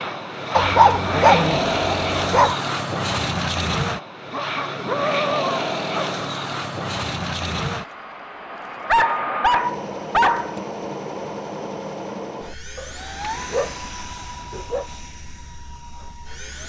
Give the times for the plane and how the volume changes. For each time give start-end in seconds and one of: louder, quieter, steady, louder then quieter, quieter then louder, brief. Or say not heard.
0.0-16.6 quieter.